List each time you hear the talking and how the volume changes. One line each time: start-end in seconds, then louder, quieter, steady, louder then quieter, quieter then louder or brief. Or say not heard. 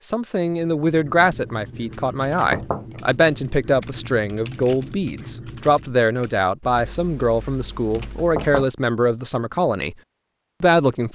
0.0-9.9 steady
10.6-11.0 brief.